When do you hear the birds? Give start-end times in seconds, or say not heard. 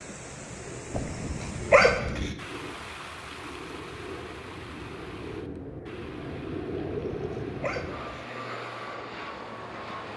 not heard.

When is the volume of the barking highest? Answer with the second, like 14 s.
2 s.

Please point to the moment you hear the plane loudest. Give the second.
7 s.